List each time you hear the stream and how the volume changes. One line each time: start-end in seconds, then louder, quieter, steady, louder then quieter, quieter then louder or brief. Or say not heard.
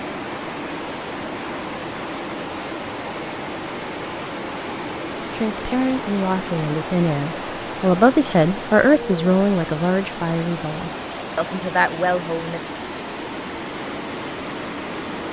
0.0-15.2 steady.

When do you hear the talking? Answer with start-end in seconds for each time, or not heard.
5.3-12.6.